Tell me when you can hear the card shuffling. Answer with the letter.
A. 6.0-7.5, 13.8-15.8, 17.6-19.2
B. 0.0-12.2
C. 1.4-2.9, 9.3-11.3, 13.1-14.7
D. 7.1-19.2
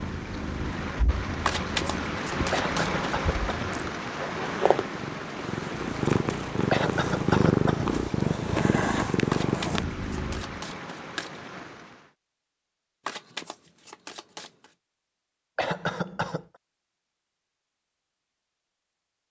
C.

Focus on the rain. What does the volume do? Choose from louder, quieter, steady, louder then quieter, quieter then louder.
quieter.